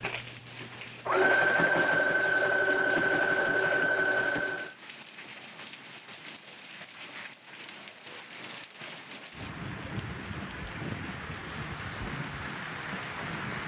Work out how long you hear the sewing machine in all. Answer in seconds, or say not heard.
5 s.